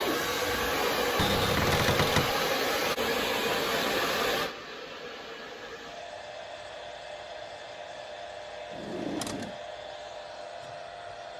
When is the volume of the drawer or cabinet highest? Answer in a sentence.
The volume of the drawer or cabinet peaks at 2 seconds.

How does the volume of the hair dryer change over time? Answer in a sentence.
The loudness of the hair dryer goes down.